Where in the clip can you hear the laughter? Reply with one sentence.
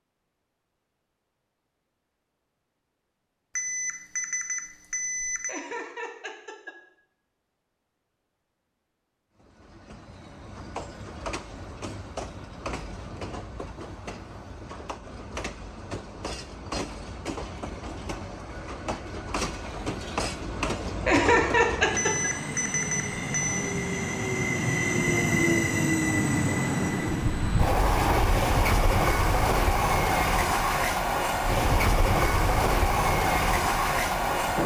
The laughter can be heard from 5.5 to 6.8 s and from 21.1 to 22.3 s.